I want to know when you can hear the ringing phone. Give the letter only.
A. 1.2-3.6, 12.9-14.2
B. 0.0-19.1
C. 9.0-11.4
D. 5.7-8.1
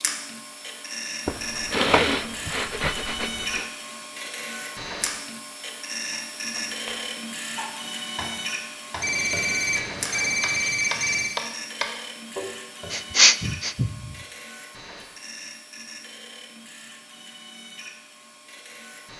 C.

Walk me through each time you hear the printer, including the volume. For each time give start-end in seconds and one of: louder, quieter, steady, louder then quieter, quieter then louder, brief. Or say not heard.
0.0-19.1 quieter.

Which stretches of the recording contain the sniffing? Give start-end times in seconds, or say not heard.
1.2-3.6, 12.9-14.2.